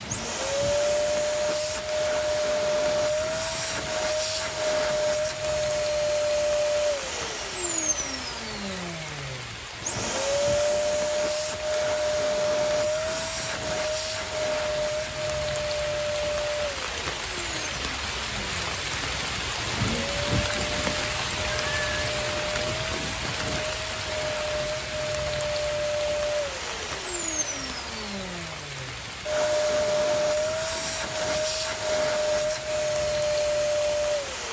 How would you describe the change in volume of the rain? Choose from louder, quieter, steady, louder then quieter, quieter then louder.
louder then quieter.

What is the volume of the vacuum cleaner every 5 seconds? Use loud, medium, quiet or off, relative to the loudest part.
loud, loud, loud, medium, medium, loud, loud.